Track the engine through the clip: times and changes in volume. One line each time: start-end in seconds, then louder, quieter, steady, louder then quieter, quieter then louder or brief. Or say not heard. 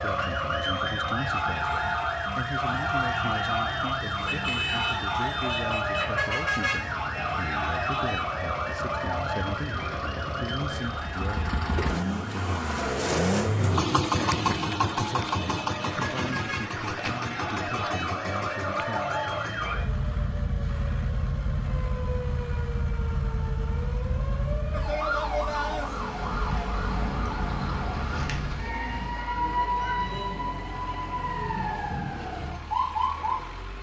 0.0-33.7 louder then quieter.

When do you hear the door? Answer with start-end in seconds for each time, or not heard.
not heard.